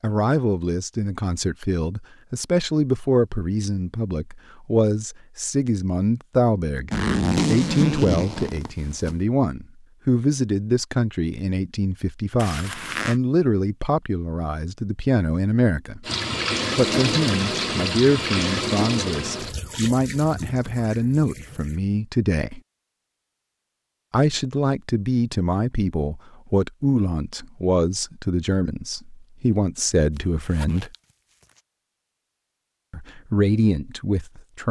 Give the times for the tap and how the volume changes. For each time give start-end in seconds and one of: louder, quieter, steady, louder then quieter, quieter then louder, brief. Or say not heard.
16.1-21.8 quieter.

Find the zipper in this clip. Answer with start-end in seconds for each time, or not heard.
6.9-9.2, 12.3-13.2, 30.1-31.6.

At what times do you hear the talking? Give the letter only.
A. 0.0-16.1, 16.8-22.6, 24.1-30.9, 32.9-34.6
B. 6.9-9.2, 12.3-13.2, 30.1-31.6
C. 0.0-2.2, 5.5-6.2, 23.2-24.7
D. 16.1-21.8
A.